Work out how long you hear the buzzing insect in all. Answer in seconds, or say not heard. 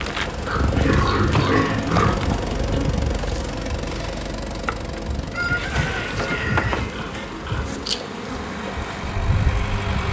10 s.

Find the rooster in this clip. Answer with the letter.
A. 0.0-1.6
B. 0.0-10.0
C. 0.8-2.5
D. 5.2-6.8
D.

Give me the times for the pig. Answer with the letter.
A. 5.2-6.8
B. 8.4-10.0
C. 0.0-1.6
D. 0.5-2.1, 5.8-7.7
D.